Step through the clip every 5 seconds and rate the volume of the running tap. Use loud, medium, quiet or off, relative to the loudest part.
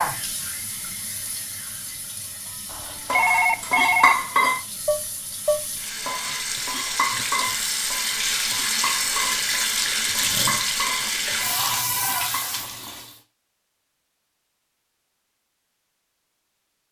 medium, loud, loud, off.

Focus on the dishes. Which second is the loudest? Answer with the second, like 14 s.
4 s.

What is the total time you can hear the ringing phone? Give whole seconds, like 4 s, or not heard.
2 s.